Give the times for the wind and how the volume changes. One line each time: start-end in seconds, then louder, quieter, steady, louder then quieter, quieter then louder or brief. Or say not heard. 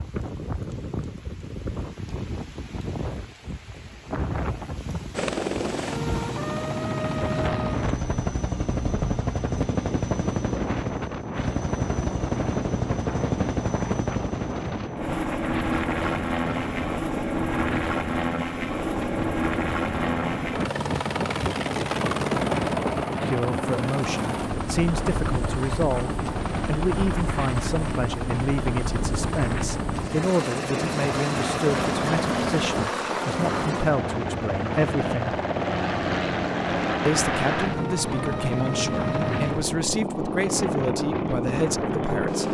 0.0-42.4 steady.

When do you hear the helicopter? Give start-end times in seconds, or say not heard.
5.1-42.4.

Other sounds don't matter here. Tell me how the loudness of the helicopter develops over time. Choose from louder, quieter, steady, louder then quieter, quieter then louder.
steady.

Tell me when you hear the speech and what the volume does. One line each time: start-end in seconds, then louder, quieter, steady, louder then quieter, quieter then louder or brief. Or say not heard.
23.2-35.4 steady
37.0-42.4 steady.